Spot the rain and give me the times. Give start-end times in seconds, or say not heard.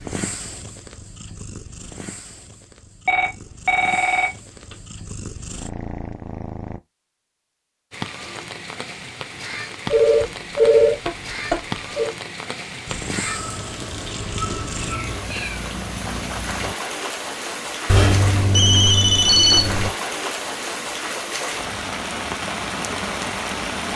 7.9-23.9.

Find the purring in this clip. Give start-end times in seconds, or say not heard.
0.0-6.8, 12.8-16.8.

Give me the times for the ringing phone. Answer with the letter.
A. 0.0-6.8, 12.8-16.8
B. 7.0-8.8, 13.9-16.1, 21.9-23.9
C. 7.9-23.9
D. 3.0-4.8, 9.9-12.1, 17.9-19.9
D.